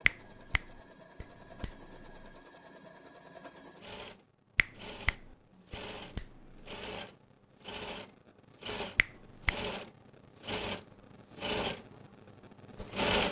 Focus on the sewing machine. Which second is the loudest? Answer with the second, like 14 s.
13 s.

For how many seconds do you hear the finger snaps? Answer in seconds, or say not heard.
5 s.